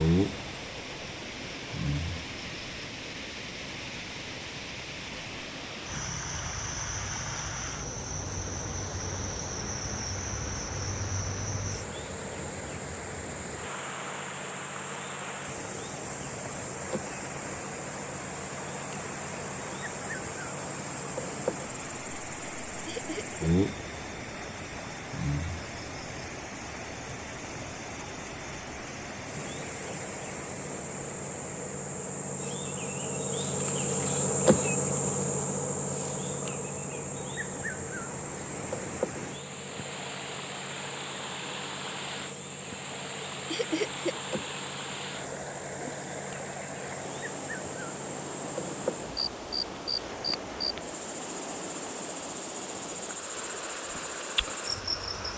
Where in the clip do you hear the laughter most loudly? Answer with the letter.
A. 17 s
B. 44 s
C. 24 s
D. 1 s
B.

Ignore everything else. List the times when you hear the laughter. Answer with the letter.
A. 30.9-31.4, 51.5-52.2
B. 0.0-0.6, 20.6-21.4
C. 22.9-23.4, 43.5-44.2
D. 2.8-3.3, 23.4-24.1
C.